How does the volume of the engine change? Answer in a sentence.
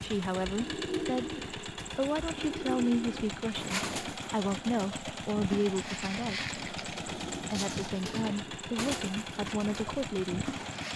The loudness of the engine stays about the same.